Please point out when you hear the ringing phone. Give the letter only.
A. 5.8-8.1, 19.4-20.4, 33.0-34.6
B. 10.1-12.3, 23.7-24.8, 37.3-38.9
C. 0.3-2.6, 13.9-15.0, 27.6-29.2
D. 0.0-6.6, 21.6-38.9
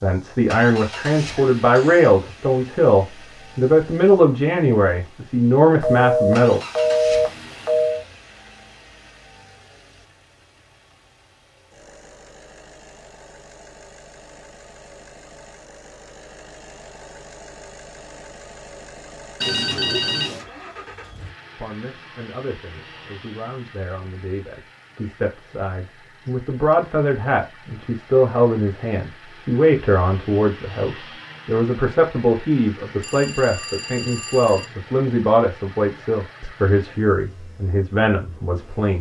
A.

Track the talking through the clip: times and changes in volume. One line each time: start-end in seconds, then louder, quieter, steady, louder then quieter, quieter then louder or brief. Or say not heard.
0.0-6.6 steady
21.6-38.9 louder.